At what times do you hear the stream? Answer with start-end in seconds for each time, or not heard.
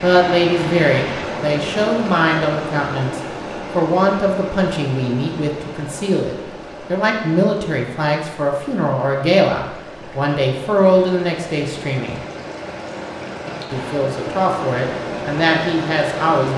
0.0-16.5.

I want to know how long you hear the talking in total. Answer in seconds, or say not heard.
15 s.